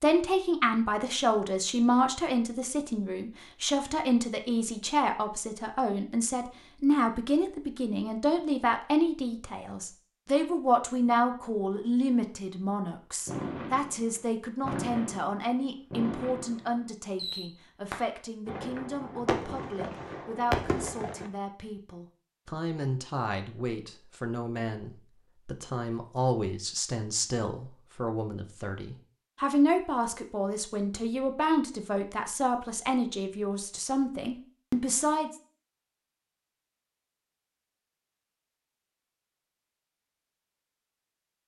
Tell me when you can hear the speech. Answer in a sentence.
You can hear the speech from 0.0 to 35.3 s.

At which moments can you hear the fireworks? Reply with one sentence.
The fireworks can be heard from 13.2 to 21.3 s.